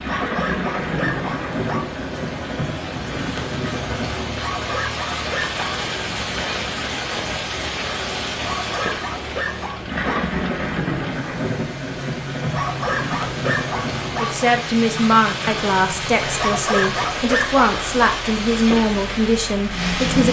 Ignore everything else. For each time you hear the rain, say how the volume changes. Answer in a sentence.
You can hear the rain from 0.0 to 20.2 s, at a steady volume.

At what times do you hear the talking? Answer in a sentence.
The talking can be heard from 14.2 to 20.2 s.